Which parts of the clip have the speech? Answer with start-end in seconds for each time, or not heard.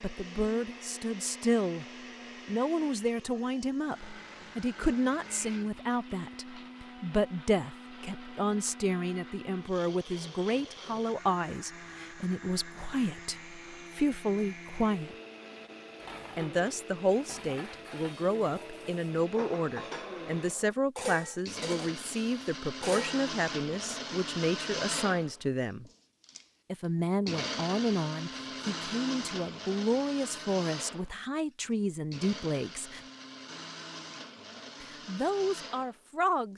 0.0-1.9, 2.5-15.2, 16.4-25.9, 26.7-33.0, 34.8-36.5.